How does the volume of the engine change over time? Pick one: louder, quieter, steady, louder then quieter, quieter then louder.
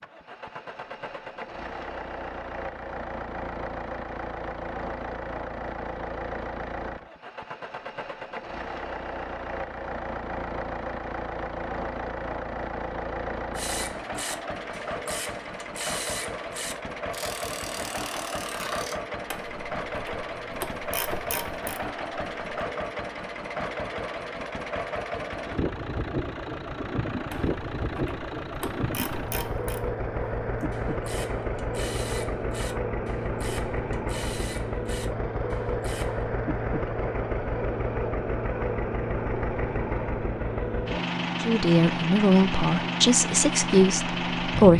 louder.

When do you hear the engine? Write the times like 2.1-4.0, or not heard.
0.0-44.7.